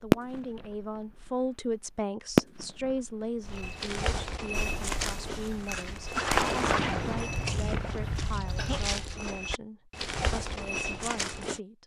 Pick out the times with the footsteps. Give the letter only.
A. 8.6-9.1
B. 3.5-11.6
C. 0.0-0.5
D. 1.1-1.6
B.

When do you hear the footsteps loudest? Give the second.
6 s.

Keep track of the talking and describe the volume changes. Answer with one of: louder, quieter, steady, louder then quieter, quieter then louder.
quieter.